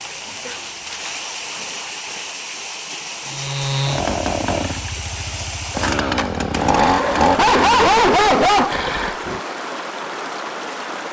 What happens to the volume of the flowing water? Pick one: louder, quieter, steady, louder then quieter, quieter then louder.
steady.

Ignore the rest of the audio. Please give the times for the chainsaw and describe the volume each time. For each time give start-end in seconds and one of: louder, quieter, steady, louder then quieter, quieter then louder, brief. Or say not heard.
3.2-8.0 quieter then louder.